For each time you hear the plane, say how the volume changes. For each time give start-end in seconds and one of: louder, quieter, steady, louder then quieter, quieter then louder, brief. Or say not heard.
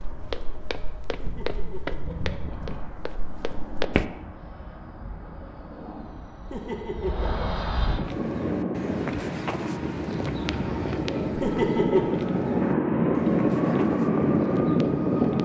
0.0-15.4 louder.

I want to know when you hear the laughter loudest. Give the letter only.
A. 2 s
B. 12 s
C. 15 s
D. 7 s
B.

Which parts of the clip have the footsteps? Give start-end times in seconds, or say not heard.
0.0-4.0, 8.0-15.4.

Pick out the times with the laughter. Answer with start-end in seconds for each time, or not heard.
1.1-2.8, 6.5-7.5, 11.3-12.2.